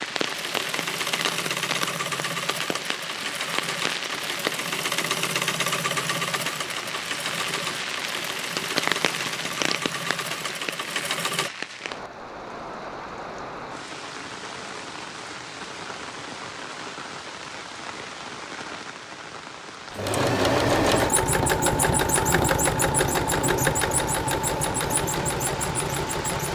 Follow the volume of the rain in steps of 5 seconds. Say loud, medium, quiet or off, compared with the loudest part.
loud, loud, medium, medium, medium, medium.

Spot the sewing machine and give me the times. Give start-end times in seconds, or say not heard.
0.1-11.5, 19.9-26.5.